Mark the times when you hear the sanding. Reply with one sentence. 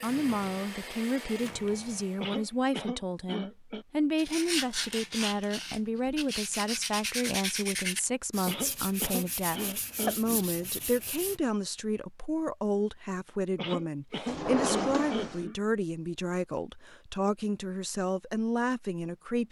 You can hear the sanding from 4.2 to 11.4 s.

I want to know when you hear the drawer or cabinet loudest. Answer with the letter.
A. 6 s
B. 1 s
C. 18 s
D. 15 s
D.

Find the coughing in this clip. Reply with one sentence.
The coughing can be heard from 2.2 to 3.9 s, from 8.4 to 10.4 s and from 13.6 to 15.6 s.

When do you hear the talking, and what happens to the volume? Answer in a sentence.
The talking can be heard from 0.0 to 19.4 s, at a steady volume.